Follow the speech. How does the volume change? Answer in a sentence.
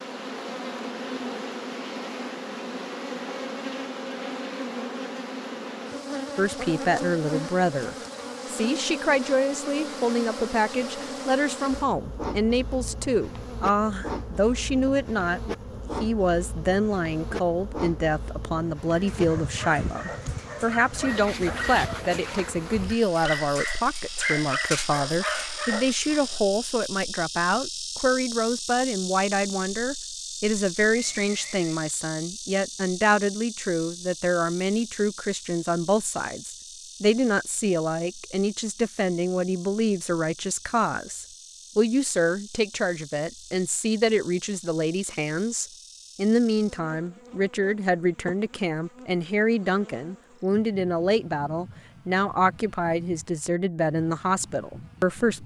The loudness of the speech stays about the same.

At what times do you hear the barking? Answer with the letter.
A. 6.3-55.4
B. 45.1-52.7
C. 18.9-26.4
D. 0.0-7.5
C.